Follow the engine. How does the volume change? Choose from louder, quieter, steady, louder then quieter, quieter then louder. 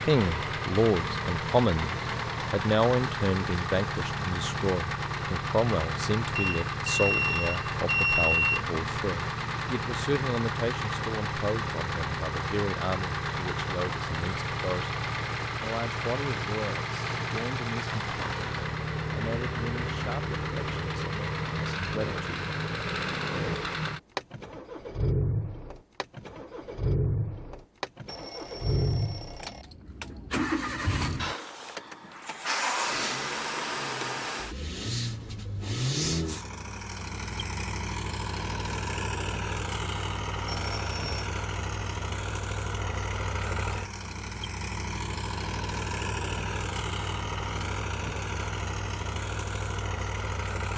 steady.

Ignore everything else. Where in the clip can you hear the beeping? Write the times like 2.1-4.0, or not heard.
6.3-8.6, 28.1-29.6, 40.5-41.3.